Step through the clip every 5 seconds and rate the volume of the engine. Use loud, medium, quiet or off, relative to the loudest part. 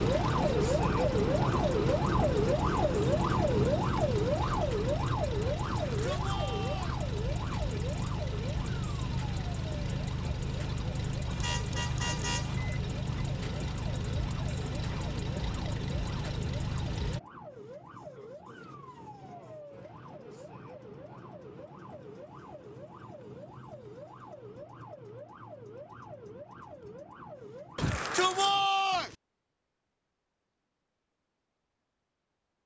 loud, loud, loud, loud, off, off, off.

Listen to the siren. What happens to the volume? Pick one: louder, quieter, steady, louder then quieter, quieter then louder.
quieter.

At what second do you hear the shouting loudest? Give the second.
29 s.